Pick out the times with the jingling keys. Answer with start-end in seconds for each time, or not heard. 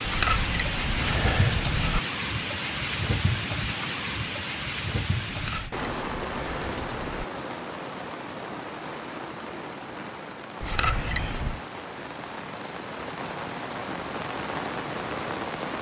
0.0-2.0, 5.3-7.2, 10.6-11.6.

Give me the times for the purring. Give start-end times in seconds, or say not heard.
not heard.